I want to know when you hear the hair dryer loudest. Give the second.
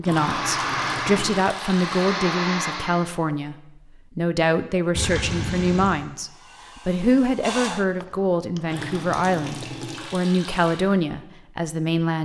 1 s.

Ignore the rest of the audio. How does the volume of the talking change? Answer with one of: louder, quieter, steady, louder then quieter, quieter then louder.
steady.